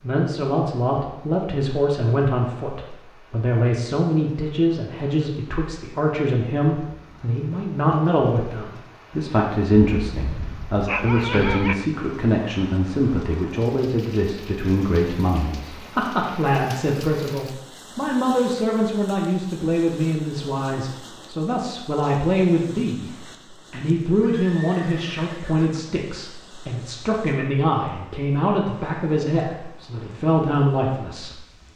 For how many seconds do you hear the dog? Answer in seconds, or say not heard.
2 s.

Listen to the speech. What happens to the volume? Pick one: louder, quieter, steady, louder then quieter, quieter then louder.
steady.